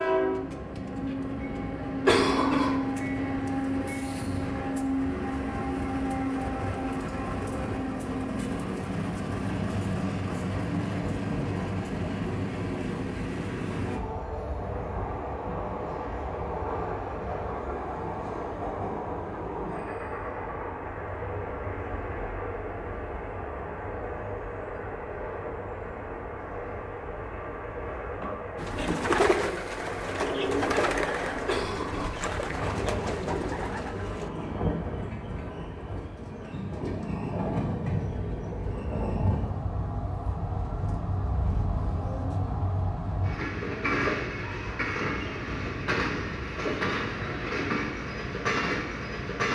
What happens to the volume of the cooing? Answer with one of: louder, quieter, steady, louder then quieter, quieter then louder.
quieter.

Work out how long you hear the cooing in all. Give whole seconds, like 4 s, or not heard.
6 s.